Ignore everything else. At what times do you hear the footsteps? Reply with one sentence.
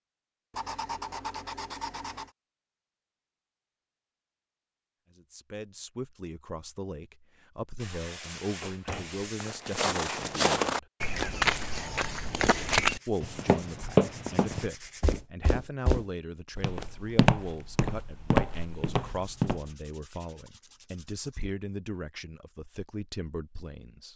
The footsteps can be heard from 9.4 to 19.6 s.